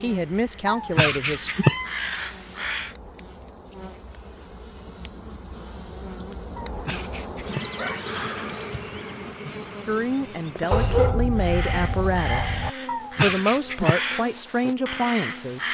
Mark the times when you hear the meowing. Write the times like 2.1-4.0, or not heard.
0.7-1.9, 6.5-8.3, 12.8-14.1.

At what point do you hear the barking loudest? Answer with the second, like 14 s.
11 s.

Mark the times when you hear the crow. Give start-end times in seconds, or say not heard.
0.1-3.0, 11.3-15.6.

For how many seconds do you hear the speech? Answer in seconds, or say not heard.
7 s.